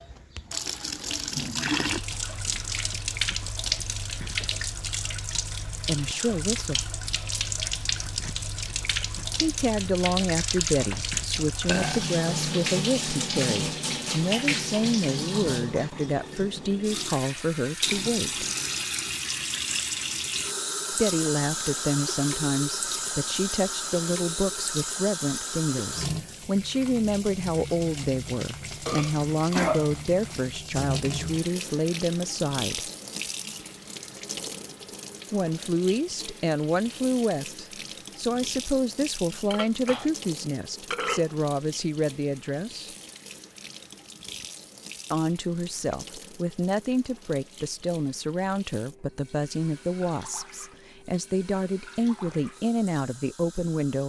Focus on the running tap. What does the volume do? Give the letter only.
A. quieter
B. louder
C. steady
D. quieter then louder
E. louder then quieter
A.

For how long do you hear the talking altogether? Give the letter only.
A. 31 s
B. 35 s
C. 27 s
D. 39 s
D.